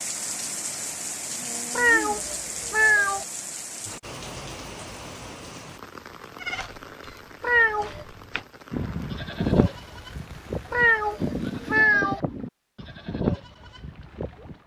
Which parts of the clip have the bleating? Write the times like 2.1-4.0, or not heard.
6.3-14.6.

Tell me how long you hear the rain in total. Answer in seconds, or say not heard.
12 s.